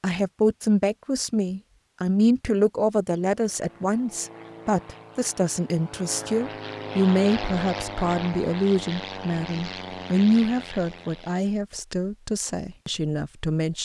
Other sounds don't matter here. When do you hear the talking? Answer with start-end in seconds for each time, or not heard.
0.0-13.8.